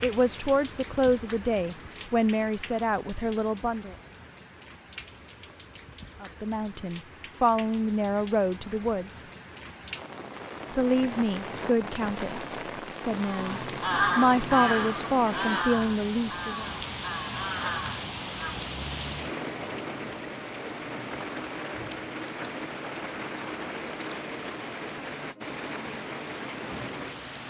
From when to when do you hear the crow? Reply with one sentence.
You can hear the crow from 13.2 to 18.6 s.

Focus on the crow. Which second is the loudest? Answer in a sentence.
The loudest moment of the crow is at 14 seconds.